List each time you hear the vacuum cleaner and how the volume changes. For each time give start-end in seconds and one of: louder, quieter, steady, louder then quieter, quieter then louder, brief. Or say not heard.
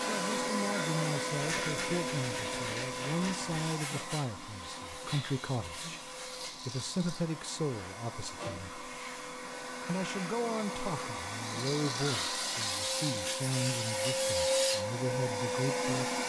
0.0-16.2 quieter then louder.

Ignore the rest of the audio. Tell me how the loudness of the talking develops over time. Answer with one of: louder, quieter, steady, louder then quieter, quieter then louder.
steady.